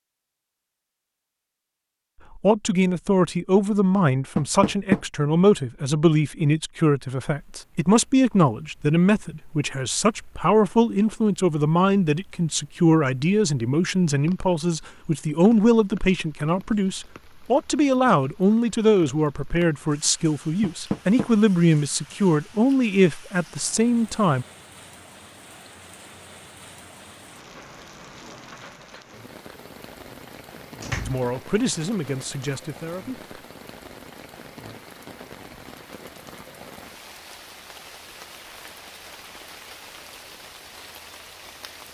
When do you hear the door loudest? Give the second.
5 s.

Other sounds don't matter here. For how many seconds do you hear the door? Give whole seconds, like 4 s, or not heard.
3 s.